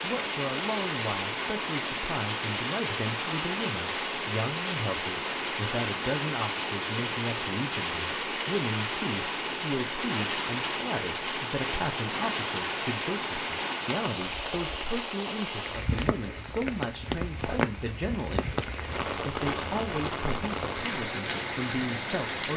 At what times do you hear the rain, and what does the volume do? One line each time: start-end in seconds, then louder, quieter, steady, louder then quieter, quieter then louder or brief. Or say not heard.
0.0-22.5 steady.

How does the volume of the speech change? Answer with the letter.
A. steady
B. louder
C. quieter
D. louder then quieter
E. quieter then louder
A.